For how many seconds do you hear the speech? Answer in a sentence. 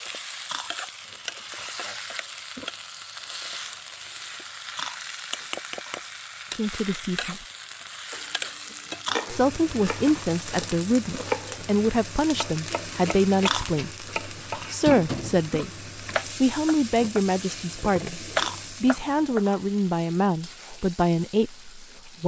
You can hear the speech for 13 seconds altogether.